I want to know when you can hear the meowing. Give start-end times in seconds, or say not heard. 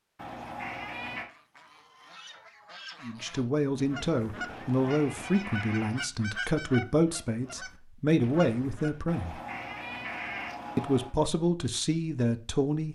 0.1-1.3, 4.5-6.0, 9.1-11.2.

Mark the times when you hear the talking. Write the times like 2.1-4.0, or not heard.
3.0-9.3, 10.8-12.8.